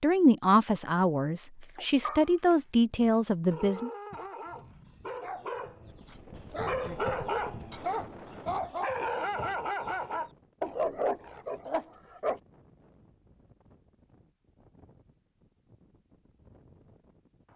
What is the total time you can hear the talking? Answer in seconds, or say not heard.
4 s.